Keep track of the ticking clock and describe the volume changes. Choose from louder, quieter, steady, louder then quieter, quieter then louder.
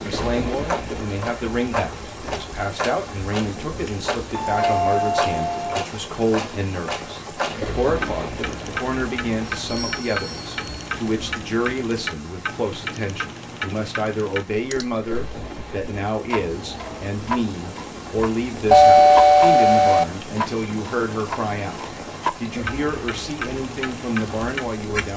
steady.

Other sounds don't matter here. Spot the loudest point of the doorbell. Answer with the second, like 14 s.
19 s.